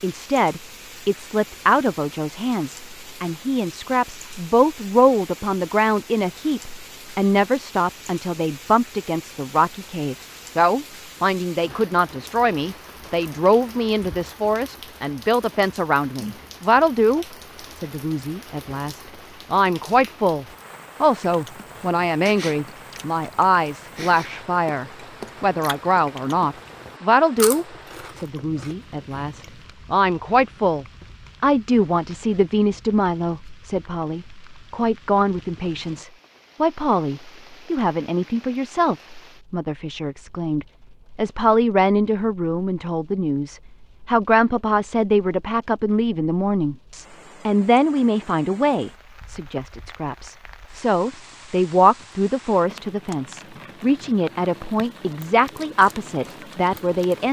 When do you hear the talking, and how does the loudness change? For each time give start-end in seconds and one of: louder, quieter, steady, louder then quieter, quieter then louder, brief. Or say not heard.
0.0-57.2 steady.